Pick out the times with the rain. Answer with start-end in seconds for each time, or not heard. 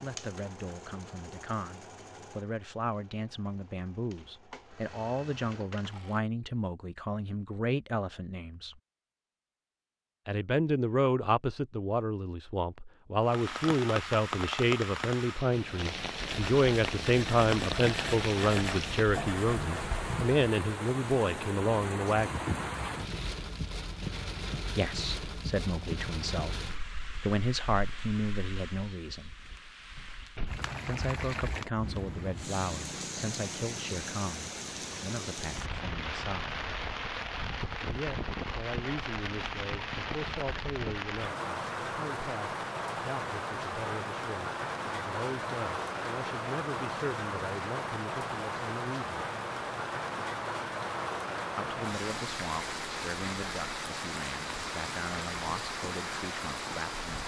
13.2-57.2.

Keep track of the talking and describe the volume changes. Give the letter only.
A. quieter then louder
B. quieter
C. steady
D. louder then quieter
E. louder
D.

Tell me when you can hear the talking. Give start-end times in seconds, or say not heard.
0.0-8.8, 10.2-22.4, 24.7-29.3, 30.9-36.6, 37.9-49.2, 51.5-57.2.